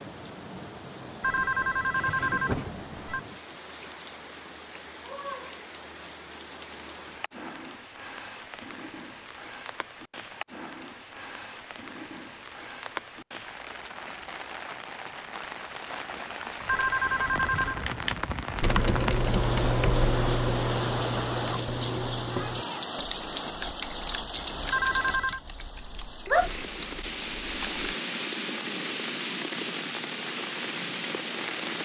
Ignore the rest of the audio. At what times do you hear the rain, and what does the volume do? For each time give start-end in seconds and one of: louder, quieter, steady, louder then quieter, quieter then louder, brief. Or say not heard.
0.0-31.8 louder.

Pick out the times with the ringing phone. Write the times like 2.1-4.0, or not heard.
1.2-3.2, 16.6-17.8, 24.7-25.4.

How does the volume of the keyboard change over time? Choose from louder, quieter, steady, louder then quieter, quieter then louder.
quieter.